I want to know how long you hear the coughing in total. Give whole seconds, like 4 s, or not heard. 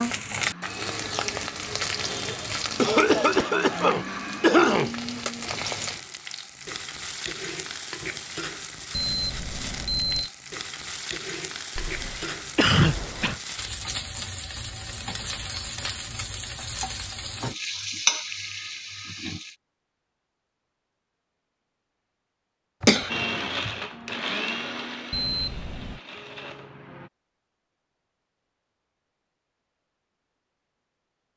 5 s.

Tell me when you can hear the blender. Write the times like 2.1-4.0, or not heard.
0.1-5.7, 23.1-27.1.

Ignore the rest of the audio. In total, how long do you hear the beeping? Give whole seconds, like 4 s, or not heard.
2 s.